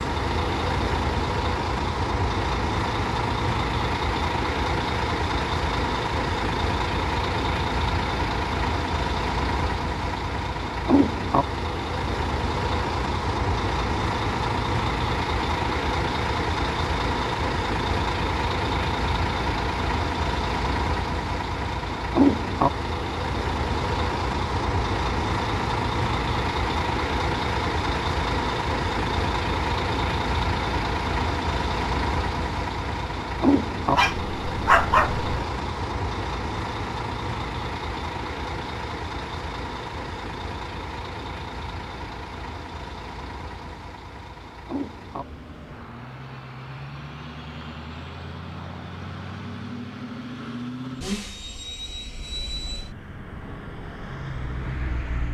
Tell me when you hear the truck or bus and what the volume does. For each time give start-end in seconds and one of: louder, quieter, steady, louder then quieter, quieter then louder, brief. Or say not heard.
0.0-55.2 quieter.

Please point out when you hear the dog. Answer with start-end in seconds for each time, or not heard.
33.9-35.5.